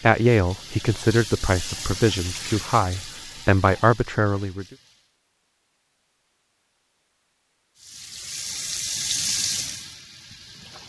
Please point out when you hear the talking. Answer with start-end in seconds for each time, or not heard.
0.0-4.7.